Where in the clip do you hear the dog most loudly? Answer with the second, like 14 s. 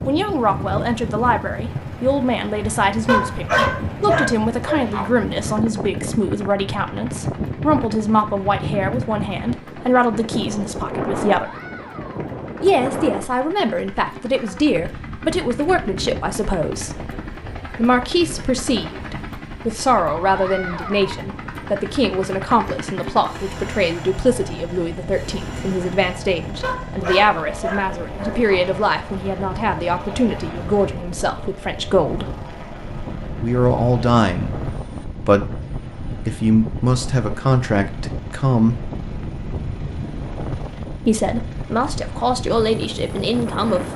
4 s.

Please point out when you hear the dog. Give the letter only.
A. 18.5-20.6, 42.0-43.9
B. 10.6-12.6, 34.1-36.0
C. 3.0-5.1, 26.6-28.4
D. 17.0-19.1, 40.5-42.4
C.